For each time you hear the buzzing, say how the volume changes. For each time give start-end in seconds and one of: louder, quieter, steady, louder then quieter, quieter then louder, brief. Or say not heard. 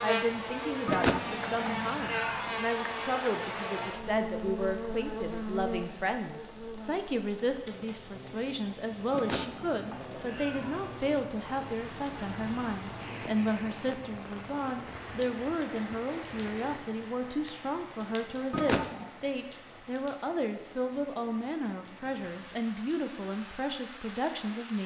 0.0-13.2 quieter.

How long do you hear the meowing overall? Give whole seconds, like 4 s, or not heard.
4 s.